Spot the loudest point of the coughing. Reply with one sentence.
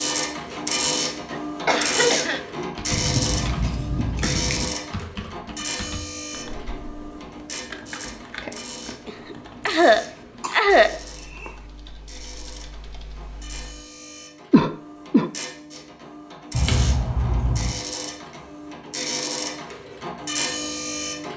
The loudest moment of the coughing is at 11 seconds.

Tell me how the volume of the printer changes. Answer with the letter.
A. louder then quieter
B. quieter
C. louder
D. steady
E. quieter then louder
E.